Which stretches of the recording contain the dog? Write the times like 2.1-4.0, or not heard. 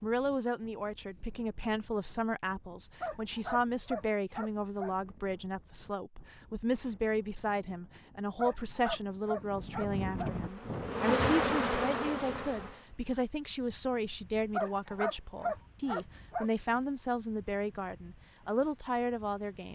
3.0-5.0, 8.3-10.3, 14.5-16.5.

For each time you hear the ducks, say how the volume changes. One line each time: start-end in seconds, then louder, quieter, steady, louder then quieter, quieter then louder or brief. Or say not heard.
not heard.